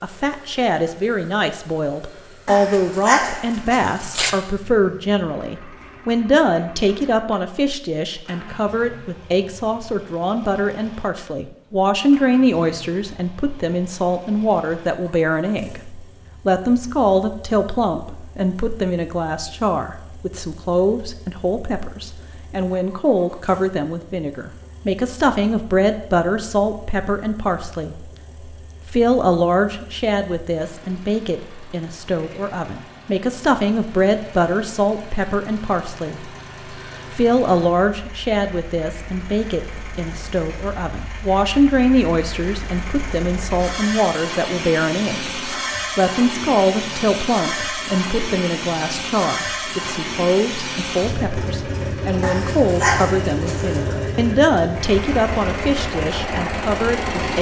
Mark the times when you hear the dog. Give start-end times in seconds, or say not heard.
2.5-4.3, 52.2-53.8.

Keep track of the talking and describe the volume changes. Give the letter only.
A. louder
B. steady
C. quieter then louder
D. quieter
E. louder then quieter
B.